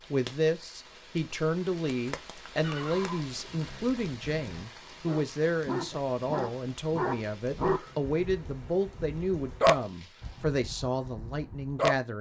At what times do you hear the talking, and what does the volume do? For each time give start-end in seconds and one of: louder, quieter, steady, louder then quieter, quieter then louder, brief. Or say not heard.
0.1-12.1 steady.